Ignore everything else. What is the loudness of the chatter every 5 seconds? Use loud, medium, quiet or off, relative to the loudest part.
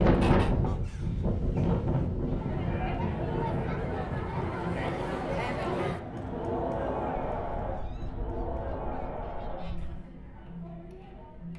loud, loud, medium.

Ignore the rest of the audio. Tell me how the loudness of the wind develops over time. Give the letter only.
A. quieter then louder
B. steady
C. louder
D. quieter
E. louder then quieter
D.